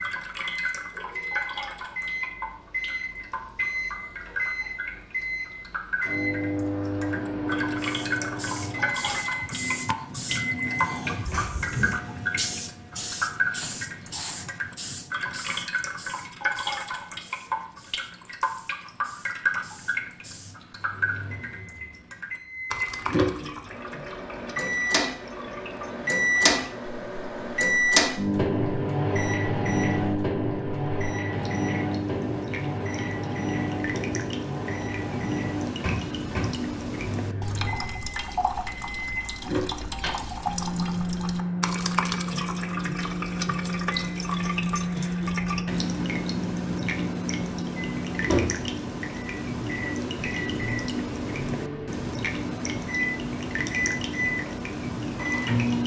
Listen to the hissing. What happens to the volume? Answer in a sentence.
The loudness of the hissing goes down.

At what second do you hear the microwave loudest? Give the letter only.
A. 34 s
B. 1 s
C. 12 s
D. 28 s
D.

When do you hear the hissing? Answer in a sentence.
You can hear the hissing from 7.8 to 20.6 s.